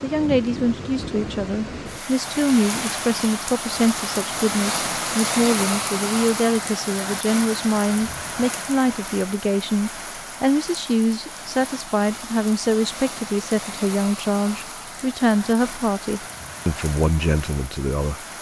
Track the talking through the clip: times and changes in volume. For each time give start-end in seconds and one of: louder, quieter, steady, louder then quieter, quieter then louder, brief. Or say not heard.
0.0-18.2 steady.